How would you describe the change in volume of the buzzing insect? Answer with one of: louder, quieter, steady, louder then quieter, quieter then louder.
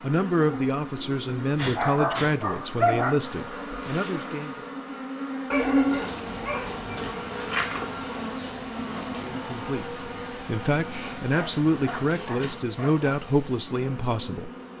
louder then quieter.